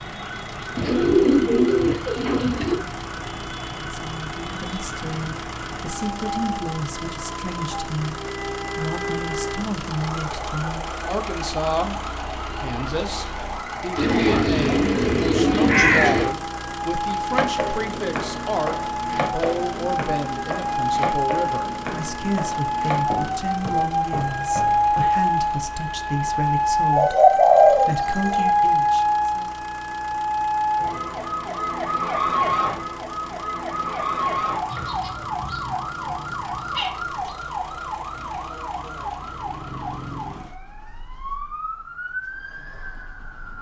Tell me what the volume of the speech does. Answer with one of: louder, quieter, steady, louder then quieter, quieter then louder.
steady.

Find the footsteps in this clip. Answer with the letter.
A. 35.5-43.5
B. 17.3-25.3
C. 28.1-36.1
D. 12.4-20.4
B.